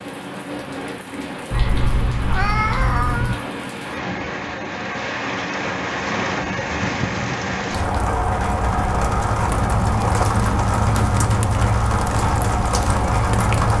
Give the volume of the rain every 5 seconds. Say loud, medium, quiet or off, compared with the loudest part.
medium, loud, loud.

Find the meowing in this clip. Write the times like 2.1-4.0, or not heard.
1.5-3.4.